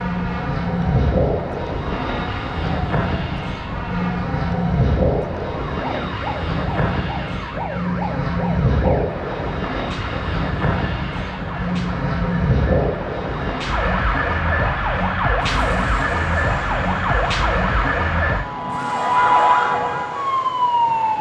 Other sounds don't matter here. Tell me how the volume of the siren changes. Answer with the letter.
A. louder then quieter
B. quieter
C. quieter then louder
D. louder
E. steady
D.